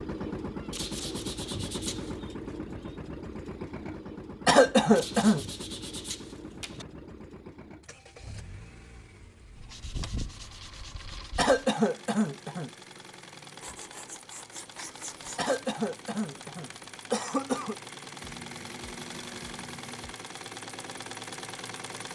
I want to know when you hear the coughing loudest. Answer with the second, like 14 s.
5 s.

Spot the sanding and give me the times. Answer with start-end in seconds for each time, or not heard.
0.7-2.1, 5.0-6.8, 9.6-11.6, 13.6-15.6, 18.2-20.2.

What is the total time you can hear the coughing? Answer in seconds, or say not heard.
5 s.